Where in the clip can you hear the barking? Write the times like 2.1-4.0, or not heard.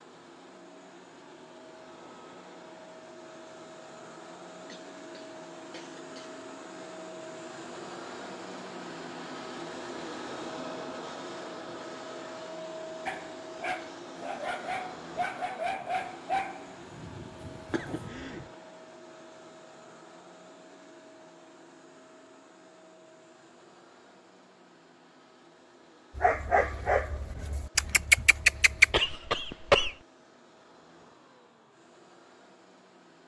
13.1-18.1, 26.1-28.9.